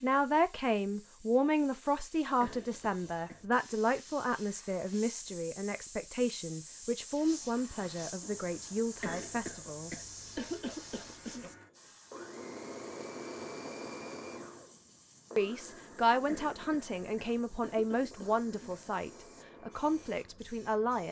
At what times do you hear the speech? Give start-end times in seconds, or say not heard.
0.0-9.9, 15.3-21.0.